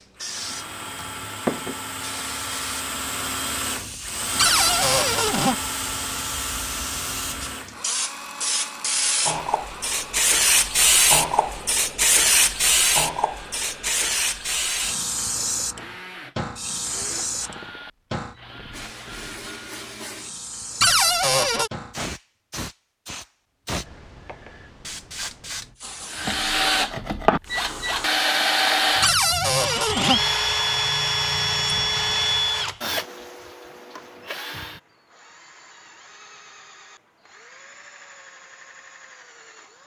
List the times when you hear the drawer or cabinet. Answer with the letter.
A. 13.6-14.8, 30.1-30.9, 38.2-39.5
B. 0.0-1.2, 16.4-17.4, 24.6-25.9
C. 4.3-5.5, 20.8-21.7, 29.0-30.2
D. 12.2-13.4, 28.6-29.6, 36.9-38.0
C.